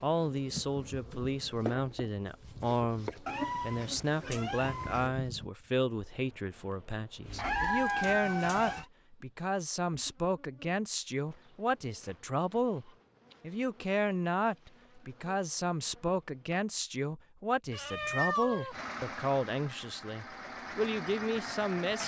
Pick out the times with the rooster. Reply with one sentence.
You can hear the rooster from 7.3 to 8.6 s.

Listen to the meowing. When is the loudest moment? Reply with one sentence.
The volume of the meowing peaks at 18 seconds.